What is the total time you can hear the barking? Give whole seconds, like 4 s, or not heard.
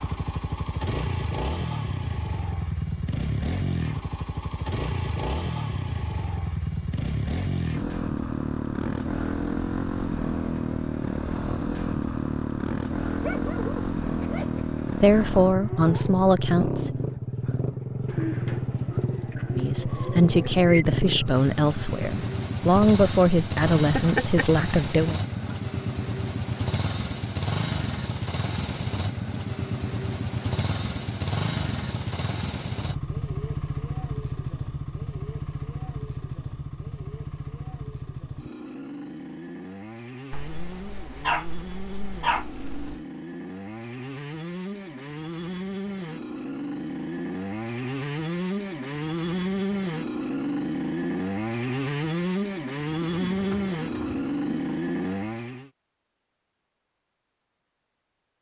6 s.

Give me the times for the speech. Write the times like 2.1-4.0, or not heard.
14.9-16.9, 19.5-25.1.